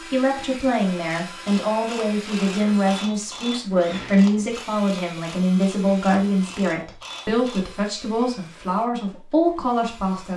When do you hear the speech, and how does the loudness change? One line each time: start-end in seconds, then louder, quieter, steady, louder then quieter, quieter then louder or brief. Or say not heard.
0.0-10.3 steady.